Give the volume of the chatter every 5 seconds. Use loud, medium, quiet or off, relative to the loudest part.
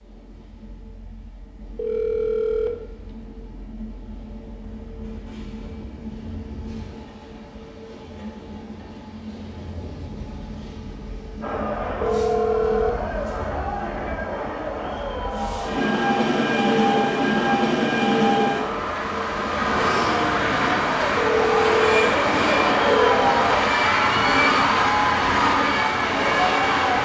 off, off, medium, medium, loud, loud.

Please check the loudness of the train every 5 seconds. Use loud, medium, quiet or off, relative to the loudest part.
quiet, quiet, quiet, loud, loud, loud.